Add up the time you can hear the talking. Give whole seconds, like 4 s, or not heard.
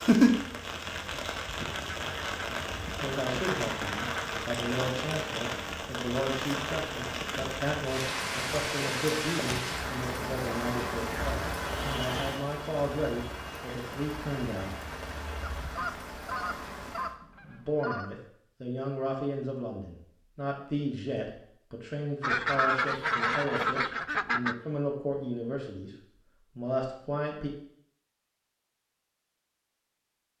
21 s.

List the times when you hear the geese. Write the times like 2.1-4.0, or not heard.
1.6-4.2, 15.4-18.1, 22.2-24.6.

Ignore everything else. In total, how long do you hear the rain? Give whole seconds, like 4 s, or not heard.
17 s.